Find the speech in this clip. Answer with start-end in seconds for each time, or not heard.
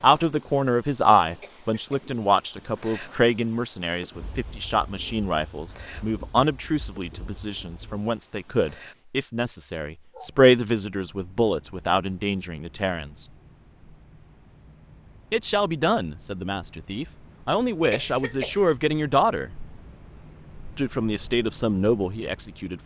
0.0-13.2, 15.3-19.5, 20.8-22.8.